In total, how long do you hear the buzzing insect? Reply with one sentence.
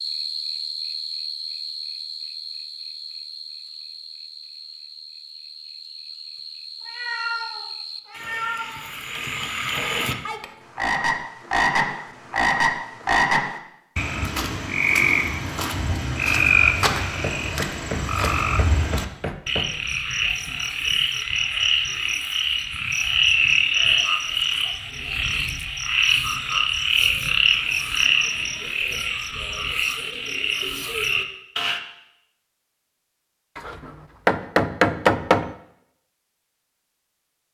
You can't hear the buzzing insect here.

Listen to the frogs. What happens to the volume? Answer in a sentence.
The volume of the frogs goes up.